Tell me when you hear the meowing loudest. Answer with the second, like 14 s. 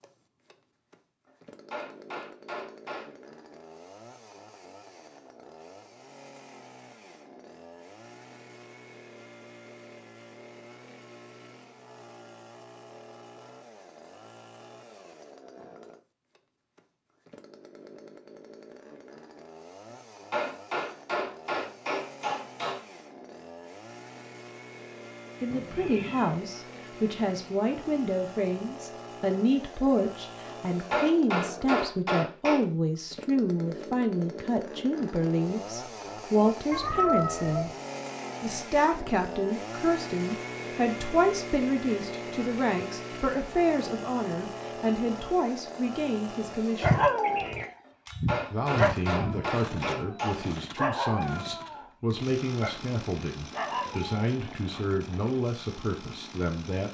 37 s.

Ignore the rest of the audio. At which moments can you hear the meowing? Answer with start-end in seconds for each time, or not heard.
25.5-26.4, 36.7-37.8.